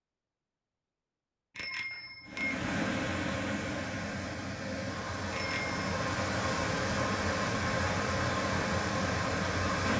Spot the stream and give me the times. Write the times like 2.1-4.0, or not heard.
2.2-9.9.